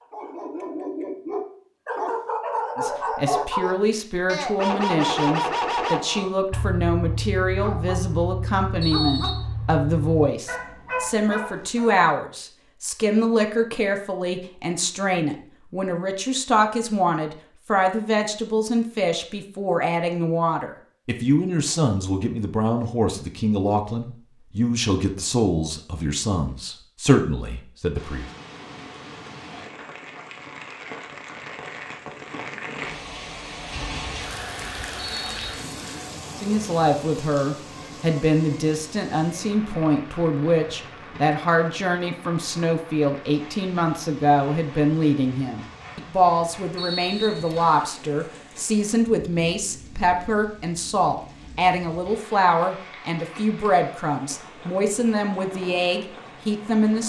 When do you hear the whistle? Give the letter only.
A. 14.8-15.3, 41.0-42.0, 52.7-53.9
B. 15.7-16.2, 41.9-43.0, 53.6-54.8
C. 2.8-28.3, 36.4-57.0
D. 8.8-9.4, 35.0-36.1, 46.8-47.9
D.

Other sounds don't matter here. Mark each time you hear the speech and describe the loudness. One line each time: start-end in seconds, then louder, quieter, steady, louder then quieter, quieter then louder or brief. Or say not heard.
2.8-28.3 steady
36.4-57.0 steady.